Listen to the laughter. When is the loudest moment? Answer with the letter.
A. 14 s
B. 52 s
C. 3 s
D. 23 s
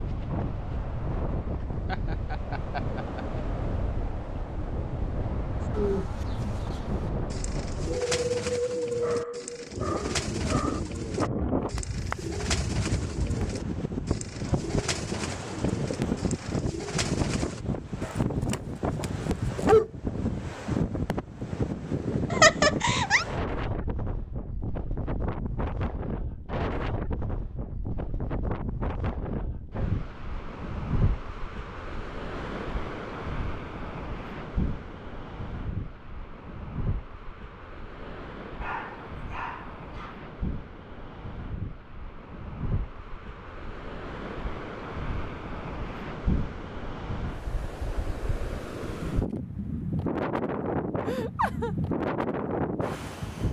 D.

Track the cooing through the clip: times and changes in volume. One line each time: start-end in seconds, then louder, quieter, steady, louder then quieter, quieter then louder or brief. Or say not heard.
5.6-17.6 steady.